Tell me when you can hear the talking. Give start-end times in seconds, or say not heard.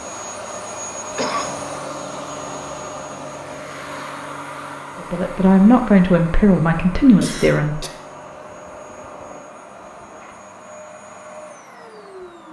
5.0-7.8.